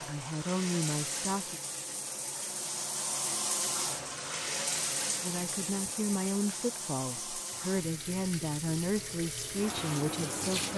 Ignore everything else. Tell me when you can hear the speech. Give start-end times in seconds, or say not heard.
0.1-1.6, 5.2-10.7.